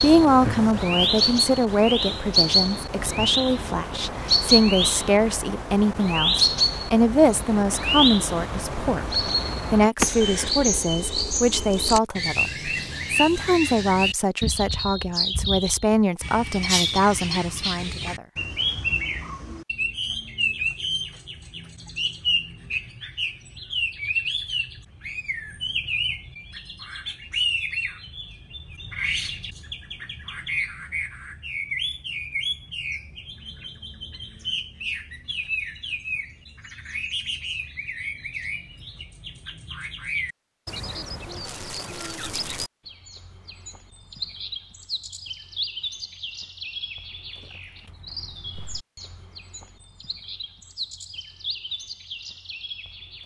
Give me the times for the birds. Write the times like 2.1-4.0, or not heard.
0.0-53.2.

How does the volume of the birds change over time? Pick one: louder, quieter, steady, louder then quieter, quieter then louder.
quieter.